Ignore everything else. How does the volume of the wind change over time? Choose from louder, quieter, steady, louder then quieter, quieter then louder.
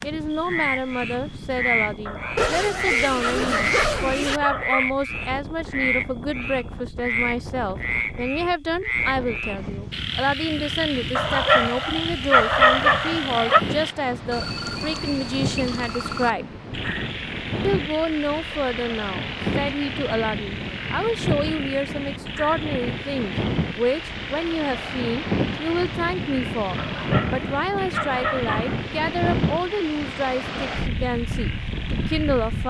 louder.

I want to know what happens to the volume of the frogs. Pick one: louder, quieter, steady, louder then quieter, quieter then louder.
quieter.